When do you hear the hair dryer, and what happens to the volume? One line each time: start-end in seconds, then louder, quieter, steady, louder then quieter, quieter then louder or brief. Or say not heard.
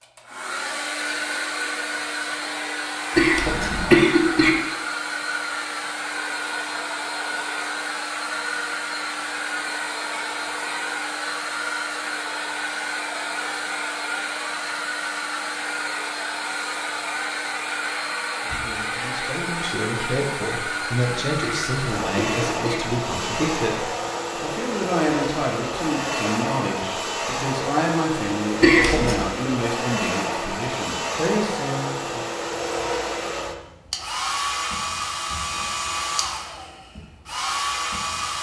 0.0-38.3 steady.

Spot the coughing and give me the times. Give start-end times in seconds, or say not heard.
3.1-4.5, 21.4-22.8, 28.6-29.2.